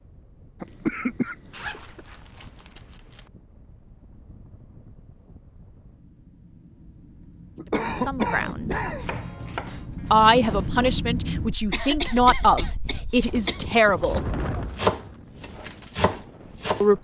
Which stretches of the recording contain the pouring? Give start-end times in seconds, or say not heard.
not heard.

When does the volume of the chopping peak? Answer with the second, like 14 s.
15 s.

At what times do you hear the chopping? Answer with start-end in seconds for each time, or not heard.
8.8-10.7, 13.1-16.9.